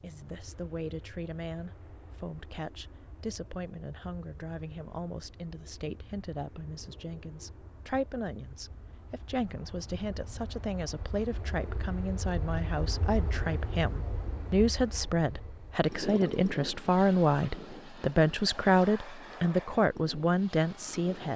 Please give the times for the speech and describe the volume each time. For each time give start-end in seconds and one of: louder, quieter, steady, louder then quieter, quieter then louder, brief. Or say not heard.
0.0-21.3 louder.